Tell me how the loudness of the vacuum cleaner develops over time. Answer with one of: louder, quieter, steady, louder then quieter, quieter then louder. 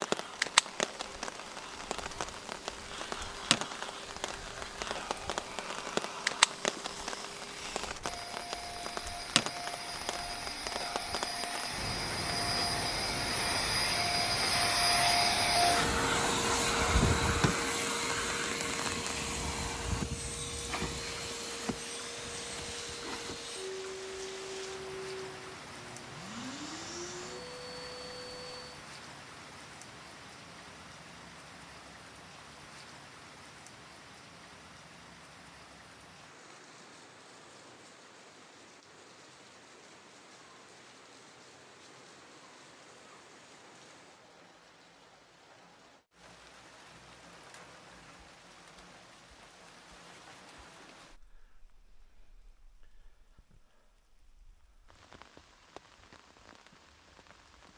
louder then quieter.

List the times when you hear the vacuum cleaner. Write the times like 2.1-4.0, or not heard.
0.0-28.9.